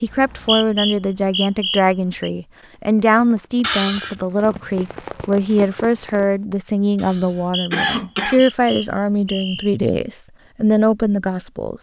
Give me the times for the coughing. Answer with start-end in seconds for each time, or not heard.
3.6-4.2, 7.0-8.4.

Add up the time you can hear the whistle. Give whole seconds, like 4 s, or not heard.
5 s.